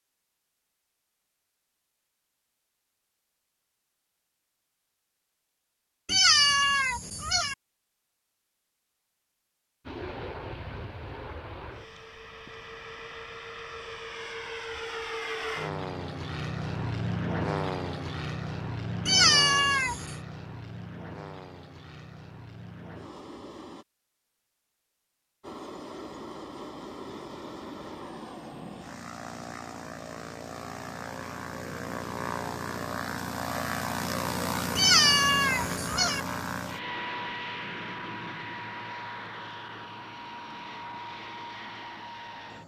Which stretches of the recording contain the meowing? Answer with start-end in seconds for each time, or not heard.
6.0-7.5, 19.1-20.1, 34.8-36.2.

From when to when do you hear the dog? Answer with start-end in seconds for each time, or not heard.
not heard.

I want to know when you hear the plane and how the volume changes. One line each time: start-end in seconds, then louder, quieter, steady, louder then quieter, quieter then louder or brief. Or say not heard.
9.8-23.9 louder then quieter
25.4-42.6 louder then quieter.